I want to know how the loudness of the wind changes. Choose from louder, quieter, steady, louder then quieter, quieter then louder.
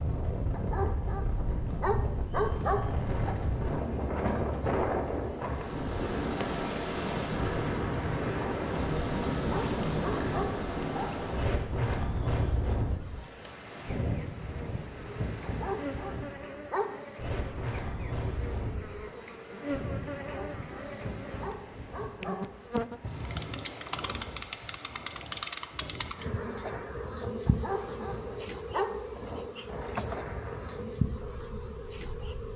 quieter.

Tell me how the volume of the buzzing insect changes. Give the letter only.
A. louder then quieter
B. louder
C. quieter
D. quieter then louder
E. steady
B.